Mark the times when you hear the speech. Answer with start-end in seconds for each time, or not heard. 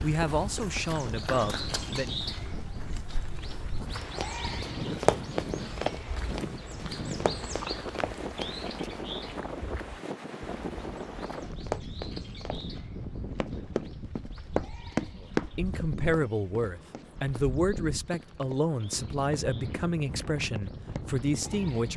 0.0-2.2, 15.2-21.9.